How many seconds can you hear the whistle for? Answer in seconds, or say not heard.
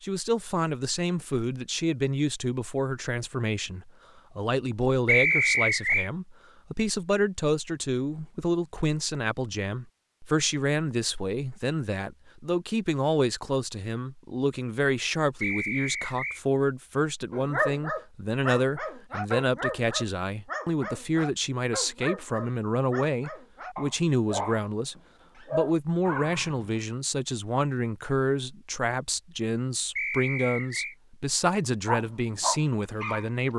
3 s.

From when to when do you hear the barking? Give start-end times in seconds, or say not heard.
17.3-26.7, 31.9-33.5.